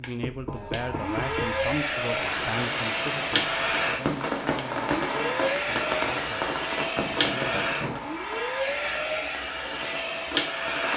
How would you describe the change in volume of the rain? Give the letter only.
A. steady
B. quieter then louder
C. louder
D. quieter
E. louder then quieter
D.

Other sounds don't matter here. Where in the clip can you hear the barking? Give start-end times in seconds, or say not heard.
not heard.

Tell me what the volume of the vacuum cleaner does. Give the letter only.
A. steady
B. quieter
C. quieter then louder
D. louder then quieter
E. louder
A.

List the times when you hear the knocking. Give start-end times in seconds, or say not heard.
0.2-1.6, 7.0-8.1.